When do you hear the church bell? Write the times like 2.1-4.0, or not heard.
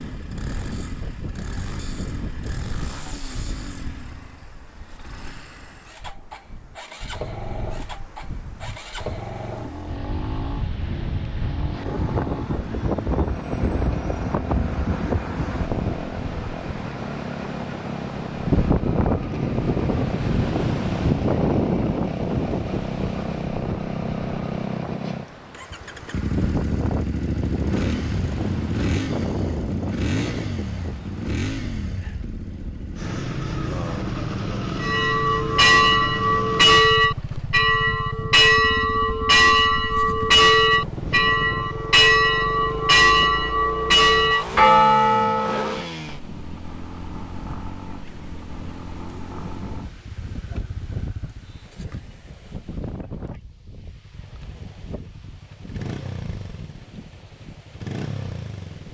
34.8-45.9.